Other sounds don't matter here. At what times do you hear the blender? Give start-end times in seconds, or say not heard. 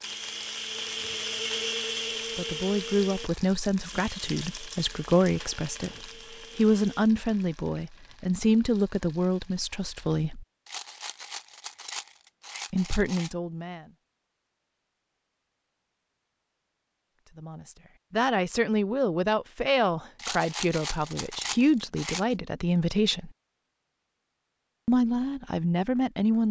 0.0-7.1.